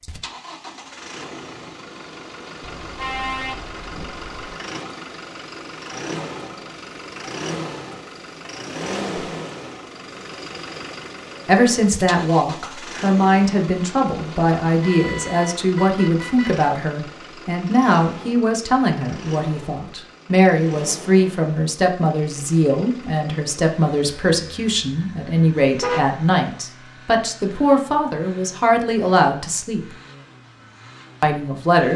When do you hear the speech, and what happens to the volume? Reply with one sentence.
You can hear the speech from 11.4 to 29.9 s, at a steady volume; and briefly from 31.2 to 31.9 s.